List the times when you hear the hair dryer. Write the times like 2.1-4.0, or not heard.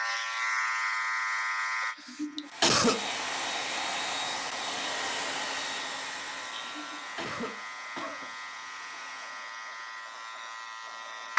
2.4-9.6.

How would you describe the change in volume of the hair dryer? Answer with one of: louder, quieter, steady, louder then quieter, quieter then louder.
quieter.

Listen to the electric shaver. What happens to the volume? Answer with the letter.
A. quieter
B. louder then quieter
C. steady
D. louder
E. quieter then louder
A.